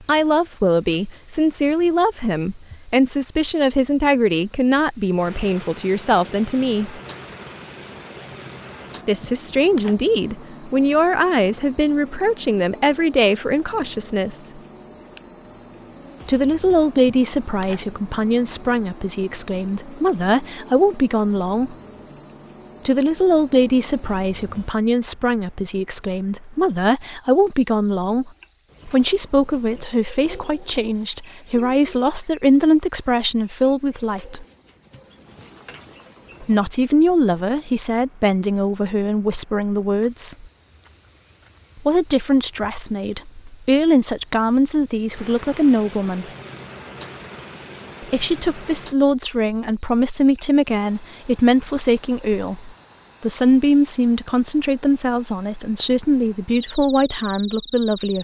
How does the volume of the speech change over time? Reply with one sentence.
The volume of the speech stays about the same.